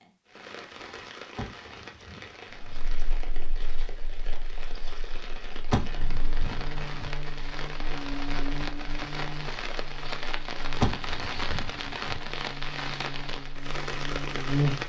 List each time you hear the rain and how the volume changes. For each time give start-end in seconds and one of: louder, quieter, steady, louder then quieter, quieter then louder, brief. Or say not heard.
0.0-14.8 louder.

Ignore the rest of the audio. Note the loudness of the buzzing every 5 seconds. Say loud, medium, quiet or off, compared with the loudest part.
quiet, medium, loud.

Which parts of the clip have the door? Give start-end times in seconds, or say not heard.
1.4-2.8, 5.7-7.1, 10.8-12.2.